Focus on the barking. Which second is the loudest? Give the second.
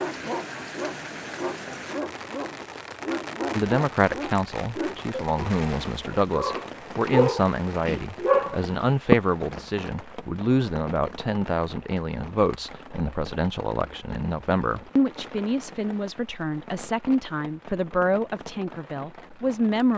9 s.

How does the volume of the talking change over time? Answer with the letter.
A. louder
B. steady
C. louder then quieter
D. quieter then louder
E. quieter
B.